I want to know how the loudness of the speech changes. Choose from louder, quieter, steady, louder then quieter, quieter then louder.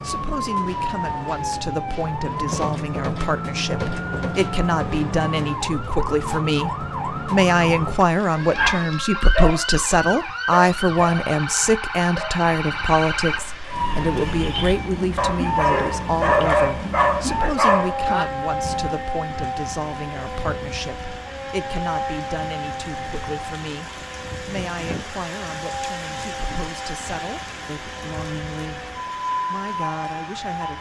louder then quieter.